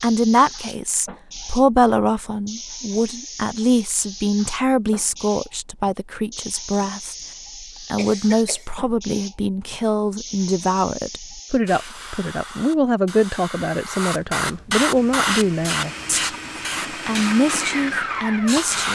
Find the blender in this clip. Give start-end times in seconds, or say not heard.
14.9-18.8.